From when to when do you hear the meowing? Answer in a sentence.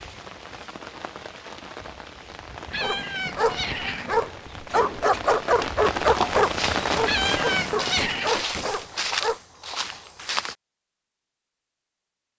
You can hear the meowing from 2.7 to 4.2 s and from 7.0 to 8.3 s.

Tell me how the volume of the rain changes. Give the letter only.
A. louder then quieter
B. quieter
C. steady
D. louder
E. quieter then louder
D.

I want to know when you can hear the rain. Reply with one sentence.
The rain can be heard from 0.0 to 7.8 s.